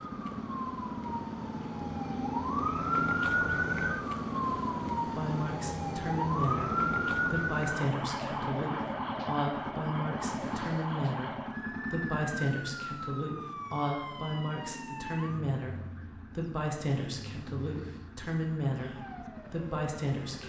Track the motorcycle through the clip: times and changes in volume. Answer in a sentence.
You can hear the motorcycle from 0.0 to 20.4 s, getting quieter.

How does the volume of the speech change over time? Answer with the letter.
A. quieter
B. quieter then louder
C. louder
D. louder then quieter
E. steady
E.